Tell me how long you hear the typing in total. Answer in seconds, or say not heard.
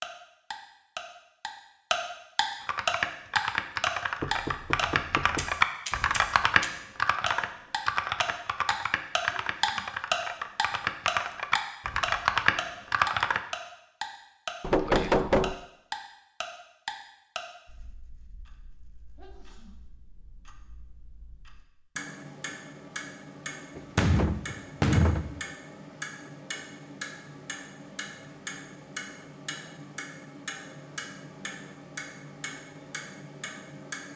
11 s.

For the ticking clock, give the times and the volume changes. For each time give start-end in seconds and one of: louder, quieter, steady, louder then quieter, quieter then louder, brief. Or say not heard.
0.0-34.1 quieter.